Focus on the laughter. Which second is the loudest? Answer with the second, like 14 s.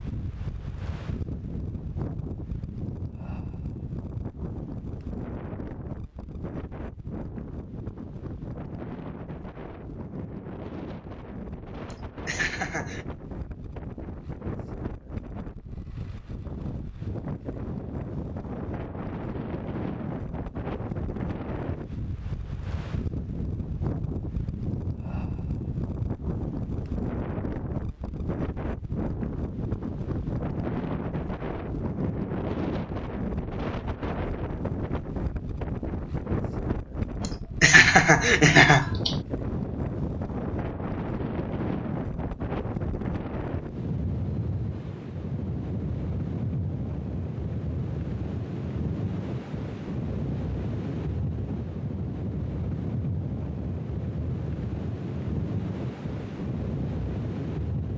39 s.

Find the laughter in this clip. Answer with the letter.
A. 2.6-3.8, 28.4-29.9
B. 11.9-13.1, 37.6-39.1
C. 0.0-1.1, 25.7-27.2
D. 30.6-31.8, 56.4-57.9
B.